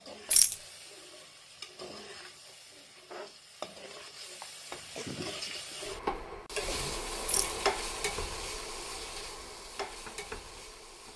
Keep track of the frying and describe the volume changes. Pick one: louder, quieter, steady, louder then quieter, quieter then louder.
louder then quieter.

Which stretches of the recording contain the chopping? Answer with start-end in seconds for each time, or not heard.
9.8-11.1.